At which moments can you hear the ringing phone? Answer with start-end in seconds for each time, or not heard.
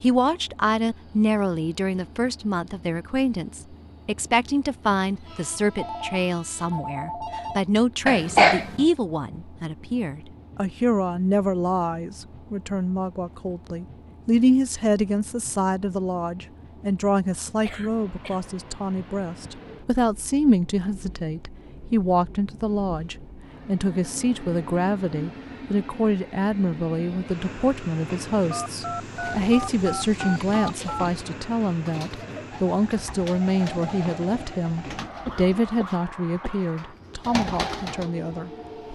5.8-7.6, 28.5-31.1.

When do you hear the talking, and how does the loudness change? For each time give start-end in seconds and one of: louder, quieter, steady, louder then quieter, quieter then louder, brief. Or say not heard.
0.0-38.9 steady.